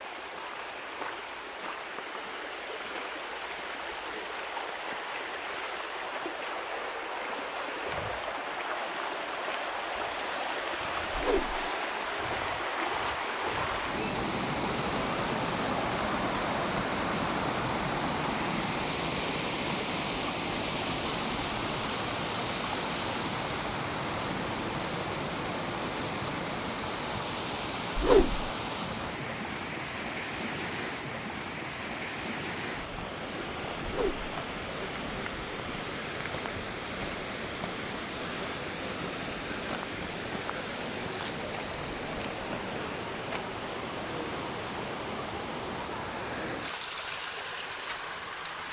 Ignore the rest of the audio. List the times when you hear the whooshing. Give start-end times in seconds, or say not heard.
11.1-11.7, 27.9-28.4, 33.9-34.3.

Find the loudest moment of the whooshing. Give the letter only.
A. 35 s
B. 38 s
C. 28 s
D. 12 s
C.